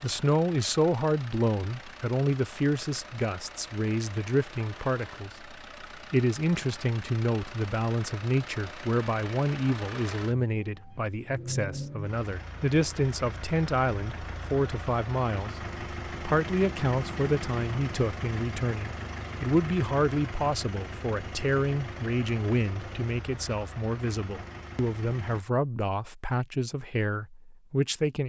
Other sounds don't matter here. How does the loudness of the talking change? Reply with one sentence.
The volume of the talking stays about the same.